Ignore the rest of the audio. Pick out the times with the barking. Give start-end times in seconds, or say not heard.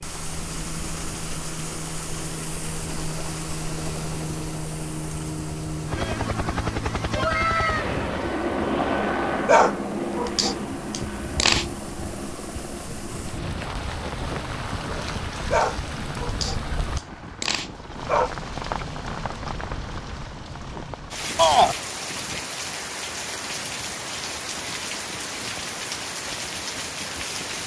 9.4-11.7, 15.5-18.3.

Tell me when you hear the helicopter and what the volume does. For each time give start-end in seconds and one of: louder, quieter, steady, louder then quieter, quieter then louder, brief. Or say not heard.
0.0-27.6 louder then quieter.